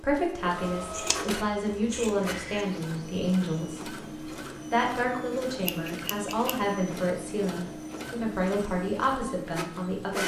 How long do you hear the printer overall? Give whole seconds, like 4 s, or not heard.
10 s.